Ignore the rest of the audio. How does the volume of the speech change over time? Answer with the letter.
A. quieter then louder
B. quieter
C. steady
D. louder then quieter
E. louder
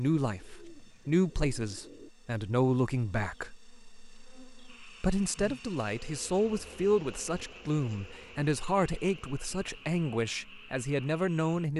C.